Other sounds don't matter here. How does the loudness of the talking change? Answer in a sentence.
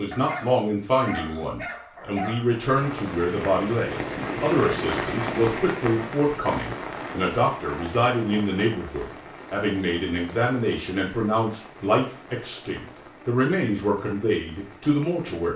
The loudness of the talking stays about the same.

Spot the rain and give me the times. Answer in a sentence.
You can hear the rain from 2.5 to 15.5 s.